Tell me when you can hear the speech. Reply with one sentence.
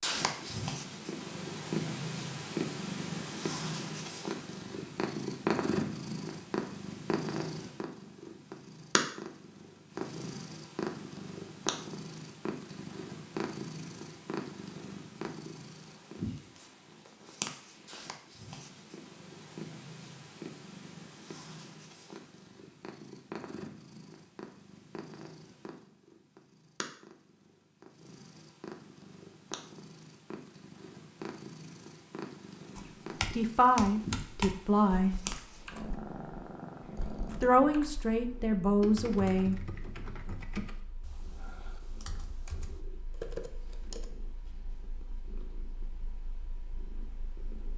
You can hear the speech from 33.3 to 35.1 s and from 37.2 to 39.6 s.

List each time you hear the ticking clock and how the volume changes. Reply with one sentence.
The ticking clock can't be heard in this clip.